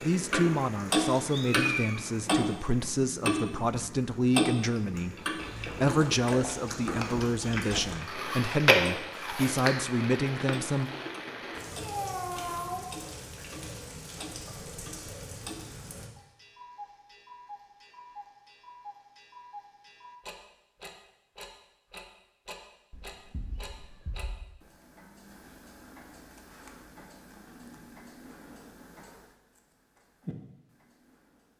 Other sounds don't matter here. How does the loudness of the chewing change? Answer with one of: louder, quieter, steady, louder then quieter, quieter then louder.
louder then quieter.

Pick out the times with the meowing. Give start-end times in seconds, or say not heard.
1.3-2.0, 11.8-12.8, 22.9-24.4.